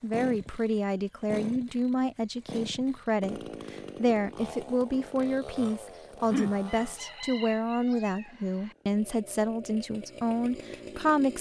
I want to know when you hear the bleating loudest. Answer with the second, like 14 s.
6 s.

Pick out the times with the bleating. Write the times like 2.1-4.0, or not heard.
4.9-7.2.